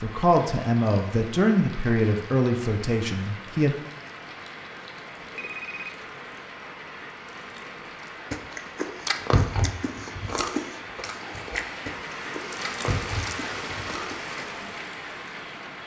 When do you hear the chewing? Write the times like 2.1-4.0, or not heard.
8.3-14.2.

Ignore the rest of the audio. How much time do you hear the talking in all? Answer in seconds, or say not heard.
4 s.